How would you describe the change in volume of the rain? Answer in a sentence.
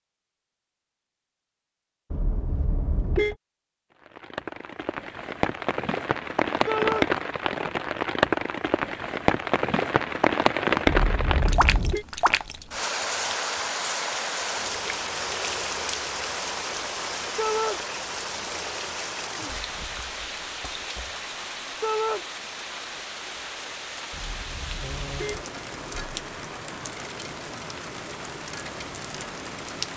The volume of the rain goes down.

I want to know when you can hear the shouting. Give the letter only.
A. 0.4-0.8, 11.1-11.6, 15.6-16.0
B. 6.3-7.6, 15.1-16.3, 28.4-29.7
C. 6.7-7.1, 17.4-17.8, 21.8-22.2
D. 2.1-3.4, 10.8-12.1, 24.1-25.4
C.